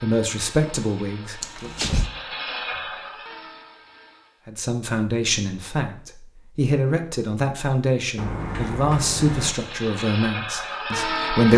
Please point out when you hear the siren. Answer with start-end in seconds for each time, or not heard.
not heard.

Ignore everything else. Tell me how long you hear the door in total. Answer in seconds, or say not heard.
2 s.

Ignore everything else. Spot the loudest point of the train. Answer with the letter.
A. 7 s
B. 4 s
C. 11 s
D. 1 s
C.